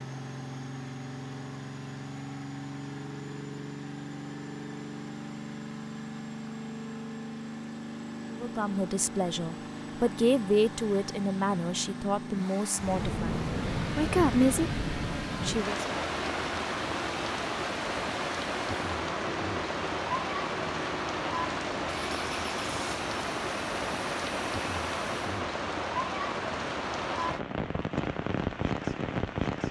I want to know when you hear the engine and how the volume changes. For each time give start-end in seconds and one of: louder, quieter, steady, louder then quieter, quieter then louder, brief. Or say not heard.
0.0-25.3 steady.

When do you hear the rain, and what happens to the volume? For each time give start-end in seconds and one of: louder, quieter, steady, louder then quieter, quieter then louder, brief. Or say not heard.
12.8-29.6 steady.